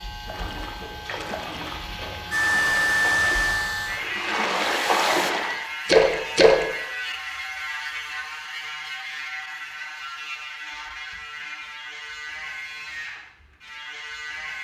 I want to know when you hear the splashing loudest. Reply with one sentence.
The volume of the splashing peaks at 6 seconds.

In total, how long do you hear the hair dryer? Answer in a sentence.
You can hear the hair dryer for 3 seconds altogether.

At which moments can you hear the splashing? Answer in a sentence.
You can hear the splashing from 0.2 to 6.7 s.